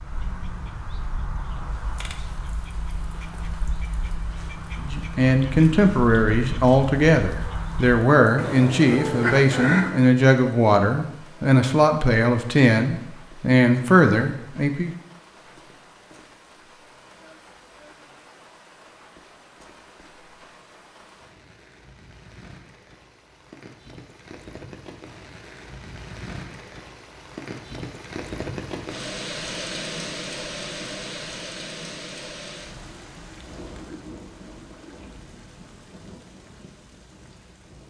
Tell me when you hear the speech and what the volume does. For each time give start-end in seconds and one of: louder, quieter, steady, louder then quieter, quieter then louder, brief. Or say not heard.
4.8-14.9 steady.